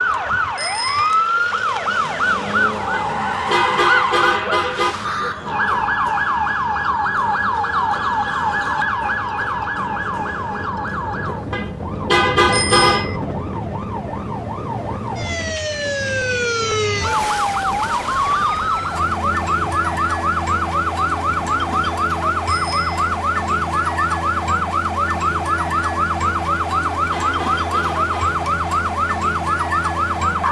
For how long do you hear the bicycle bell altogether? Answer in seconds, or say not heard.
2 s.